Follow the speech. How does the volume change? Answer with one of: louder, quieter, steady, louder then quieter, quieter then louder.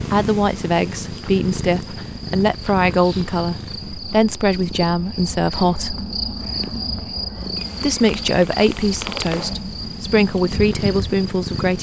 steady.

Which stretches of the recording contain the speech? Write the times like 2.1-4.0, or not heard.
0.0-6.0, 7.8-11.7.